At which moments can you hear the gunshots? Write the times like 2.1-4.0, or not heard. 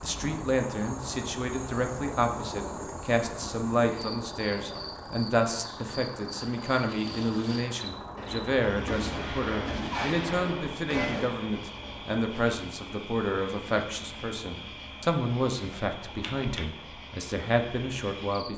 8.2-11.3.